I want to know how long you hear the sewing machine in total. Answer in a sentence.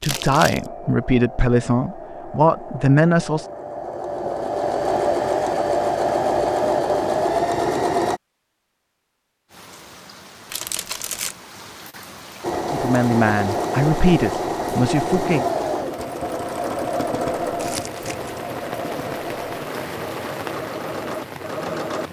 The sewing machine can be heard for 18 seconds in total.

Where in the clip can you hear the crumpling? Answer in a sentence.
You can hear the crumpling from 0.0 to 0.7 s, from 10.5 to 11.3 s and from 17.6 to 18.4 s.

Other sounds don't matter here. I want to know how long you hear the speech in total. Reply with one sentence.
The speech can be heard for 6 seconds in total.